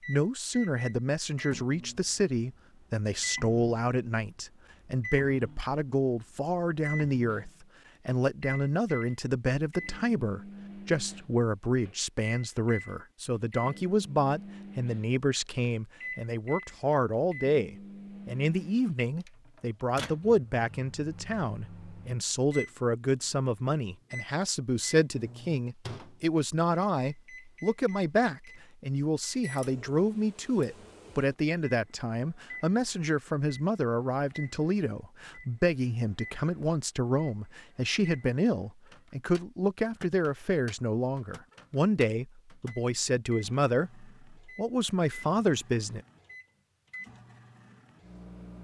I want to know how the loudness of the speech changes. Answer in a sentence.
The loudness of the speech stays about the same.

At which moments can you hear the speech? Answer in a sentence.
You can hear the speech from 0.1 to 46.0 s.